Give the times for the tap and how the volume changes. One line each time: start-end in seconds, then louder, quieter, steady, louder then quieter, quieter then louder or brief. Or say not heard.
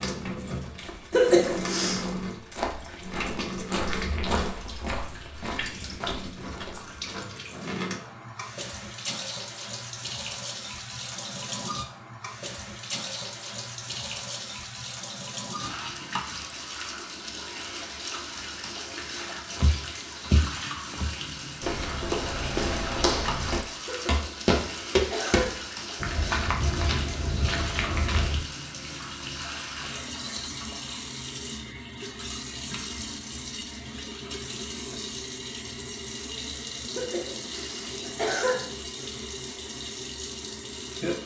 0.0-41.2 steady.